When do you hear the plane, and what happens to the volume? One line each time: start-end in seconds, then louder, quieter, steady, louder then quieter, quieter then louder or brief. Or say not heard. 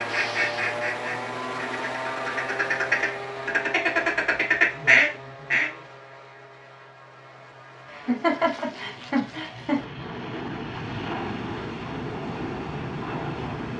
0.0-13.7 quieter then louder.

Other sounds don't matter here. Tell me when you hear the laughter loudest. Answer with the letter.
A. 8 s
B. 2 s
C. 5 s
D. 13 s
A.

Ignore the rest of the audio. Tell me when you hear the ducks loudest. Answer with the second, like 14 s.
5 s.